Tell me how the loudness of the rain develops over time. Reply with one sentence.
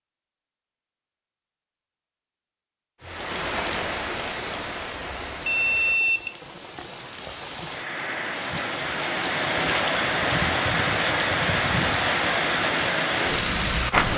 The volume of the rain goes down, then up.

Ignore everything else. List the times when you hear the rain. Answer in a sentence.
You can hear the rain from 3.0 to 14.1 s.